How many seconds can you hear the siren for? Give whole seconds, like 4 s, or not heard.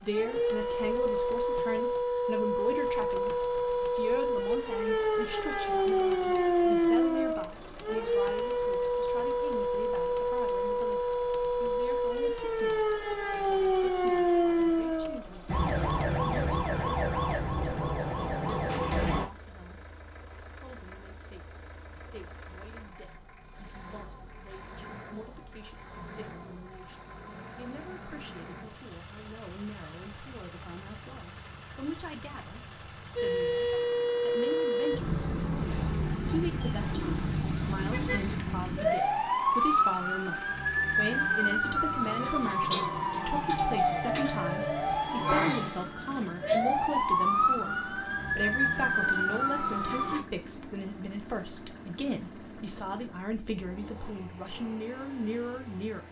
36 s.